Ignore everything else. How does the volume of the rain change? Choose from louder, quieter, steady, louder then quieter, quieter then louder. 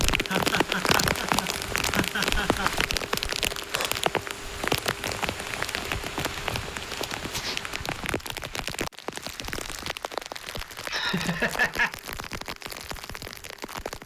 quieter.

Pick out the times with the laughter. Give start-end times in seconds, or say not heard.
0.2-2.8, 10.8-11.9.